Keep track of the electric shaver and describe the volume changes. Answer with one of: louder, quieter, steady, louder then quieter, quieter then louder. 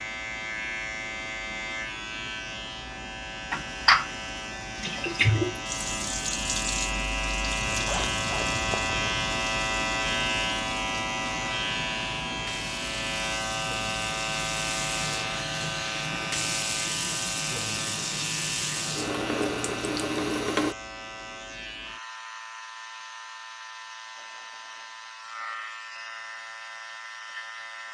louder then quieter.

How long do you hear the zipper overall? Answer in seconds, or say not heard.
2 s.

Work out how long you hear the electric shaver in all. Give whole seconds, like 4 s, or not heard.
28 s.